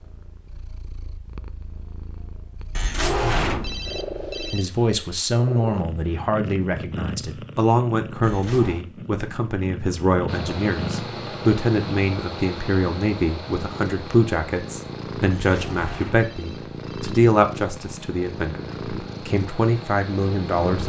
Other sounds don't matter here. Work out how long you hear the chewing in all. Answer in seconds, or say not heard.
not heard.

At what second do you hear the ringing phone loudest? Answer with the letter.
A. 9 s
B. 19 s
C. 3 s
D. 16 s
C.